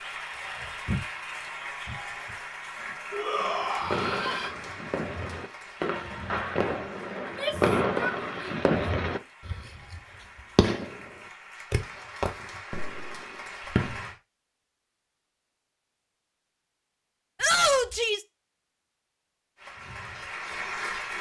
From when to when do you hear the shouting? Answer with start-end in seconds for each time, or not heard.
3.1-4.5, 7.2-8.6, 17.4-18.2.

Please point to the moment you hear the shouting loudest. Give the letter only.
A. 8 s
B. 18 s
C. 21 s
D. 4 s
B.